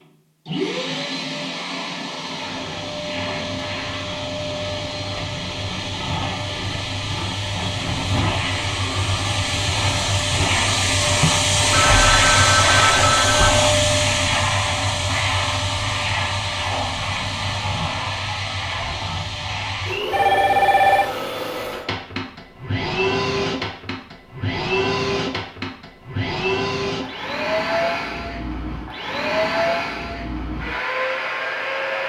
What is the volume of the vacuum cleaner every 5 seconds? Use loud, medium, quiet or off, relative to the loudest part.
medium, medium, loud, medium, medium, medium, medium.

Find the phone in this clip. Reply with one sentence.
You can hear the phone from 11.7 to 13.7 s and from 20.1 to 21.1 s.